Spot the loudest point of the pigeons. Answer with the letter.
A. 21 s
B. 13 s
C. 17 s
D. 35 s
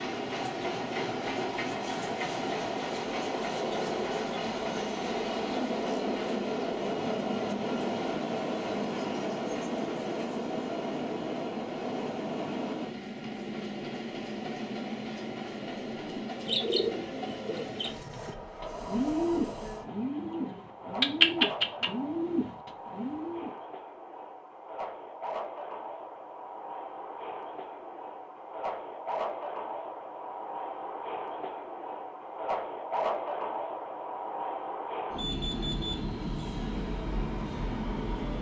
A.